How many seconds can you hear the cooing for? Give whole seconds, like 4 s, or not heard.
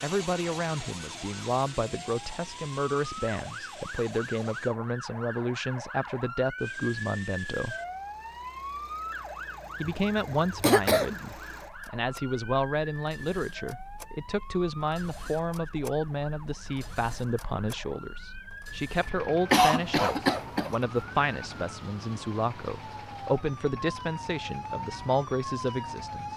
not heard.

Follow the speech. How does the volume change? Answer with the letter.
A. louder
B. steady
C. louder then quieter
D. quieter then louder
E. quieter
B.